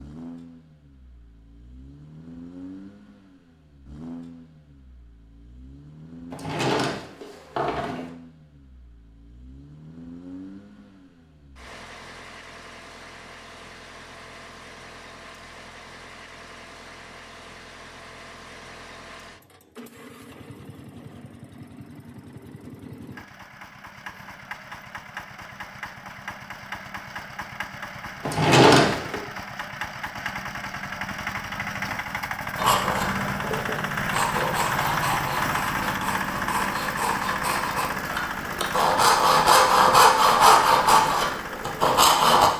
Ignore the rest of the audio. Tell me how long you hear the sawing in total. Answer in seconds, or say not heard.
10 s.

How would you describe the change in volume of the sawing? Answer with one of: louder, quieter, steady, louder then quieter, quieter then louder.
louder.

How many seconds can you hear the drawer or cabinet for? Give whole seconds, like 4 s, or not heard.
3 s.